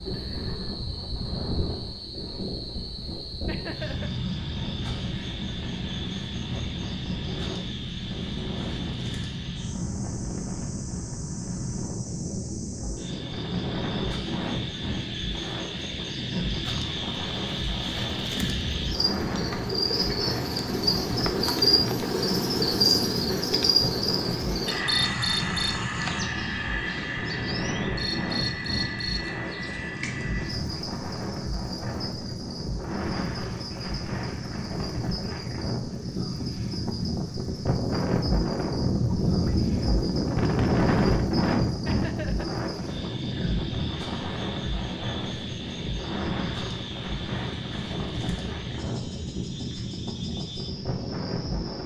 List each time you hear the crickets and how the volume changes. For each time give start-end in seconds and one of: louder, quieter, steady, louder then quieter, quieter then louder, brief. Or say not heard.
0.0-51.8 louder then quieter.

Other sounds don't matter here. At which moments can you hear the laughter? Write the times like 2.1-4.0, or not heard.
3.5-4.1, 41.9-42.5.